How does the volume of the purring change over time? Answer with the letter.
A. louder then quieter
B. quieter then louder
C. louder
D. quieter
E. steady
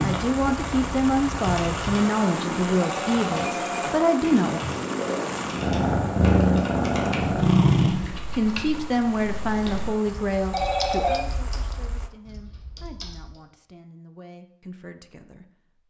C.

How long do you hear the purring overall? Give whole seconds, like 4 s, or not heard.
8 s.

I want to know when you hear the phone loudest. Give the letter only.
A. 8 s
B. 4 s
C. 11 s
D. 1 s
C.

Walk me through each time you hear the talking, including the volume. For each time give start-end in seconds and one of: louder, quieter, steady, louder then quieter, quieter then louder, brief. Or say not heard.
0.0-4.6 steady
8.3-15.8 quieter.